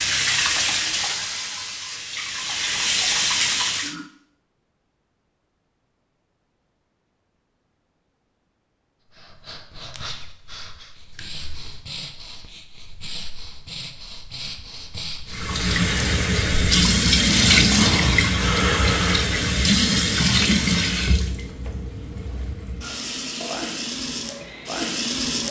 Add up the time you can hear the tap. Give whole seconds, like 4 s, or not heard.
14 s.